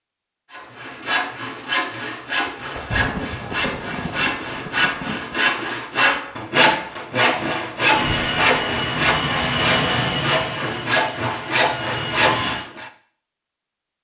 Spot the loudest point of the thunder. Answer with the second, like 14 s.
3 s.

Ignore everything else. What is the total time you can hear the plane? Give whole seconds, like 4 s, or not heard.
5 s.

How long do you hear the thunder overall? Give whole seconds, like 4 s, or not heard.
3 s.